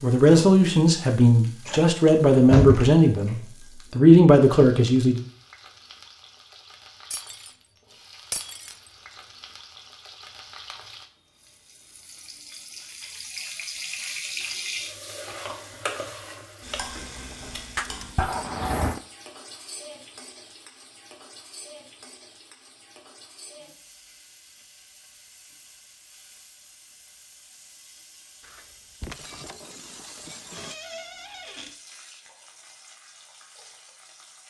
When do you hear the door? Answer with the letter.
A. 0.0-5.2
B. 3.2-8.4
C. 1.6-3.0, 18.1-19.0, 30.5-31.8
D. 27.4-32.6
C.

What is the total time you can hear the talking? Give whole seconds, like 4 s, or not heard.
5 s.